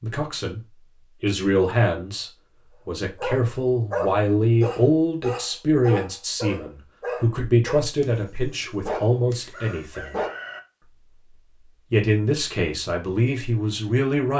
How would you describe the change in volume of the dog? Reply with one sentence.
The volume of the dog goes down, then up.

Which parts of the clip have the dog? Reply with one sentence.
You can hear the dog from 3.1 to 10.3 s.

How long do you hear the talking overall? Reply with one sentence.
The talking can be heard for 12 seconds in total.